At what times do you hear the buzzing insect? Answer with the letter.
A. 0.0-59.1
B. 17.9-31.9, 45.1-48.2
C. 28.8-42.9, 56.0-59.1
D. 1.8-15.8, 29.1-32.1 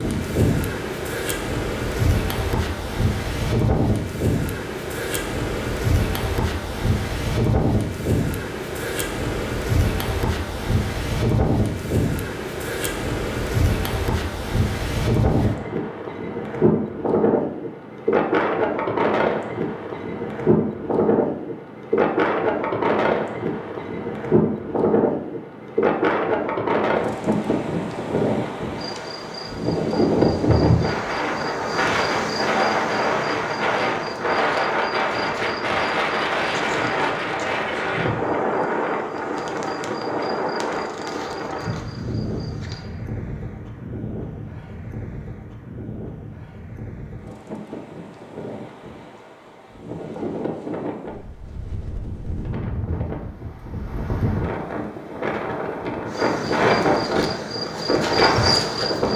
C.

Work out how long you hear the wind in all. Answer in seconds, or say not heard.
59 s.